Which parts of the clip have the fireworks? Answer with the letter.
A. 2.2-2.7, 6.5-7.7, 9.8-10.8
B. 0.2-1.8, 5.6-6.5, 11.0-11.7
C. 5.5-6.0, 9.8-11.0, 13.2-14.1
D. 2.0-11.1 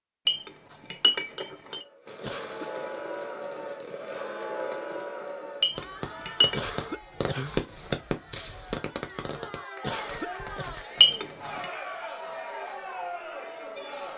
D.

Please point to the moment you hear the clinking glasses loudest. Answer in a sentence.
The loudest moment of the clinking glasses is at 11 seconds.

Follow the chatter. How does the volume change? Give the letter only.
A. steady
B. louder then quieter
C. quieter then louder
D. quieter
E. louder
C.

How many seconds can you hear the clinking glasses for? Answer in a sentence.
You can hear the clinking glasses for 3 seconds altogether.